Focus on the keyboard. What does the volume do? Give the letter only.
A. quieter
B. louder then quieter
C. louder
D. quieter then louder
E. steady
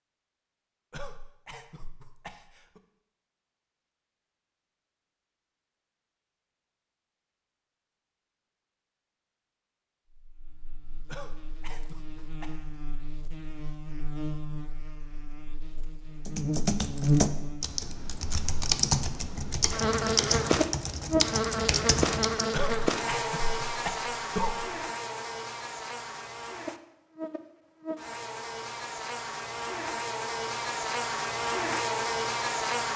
E.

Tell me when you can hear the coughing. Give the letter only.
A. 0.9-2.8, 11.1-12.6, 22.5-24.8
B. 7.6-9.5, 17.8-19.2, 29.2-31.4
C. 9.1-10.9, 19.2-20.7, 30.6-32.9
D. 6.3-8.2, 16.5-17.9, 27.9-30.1
A.